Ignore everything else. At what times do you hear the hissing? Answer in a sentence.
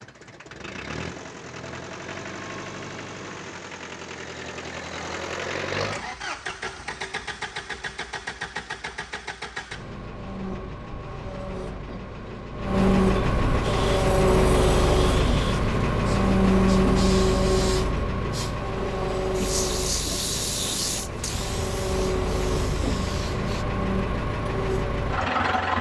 You can hear the hissing from 13.6 to 23.6 s.